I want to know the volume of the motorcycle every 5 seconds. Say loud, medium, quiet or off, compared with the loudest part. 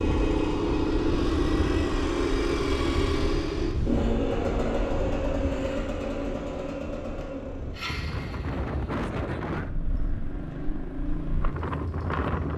loud, medium, medium.